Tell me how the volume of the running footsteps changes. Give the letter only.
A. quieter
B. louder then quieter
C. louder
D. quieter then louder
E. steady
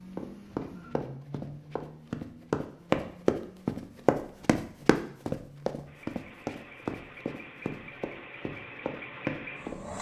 B.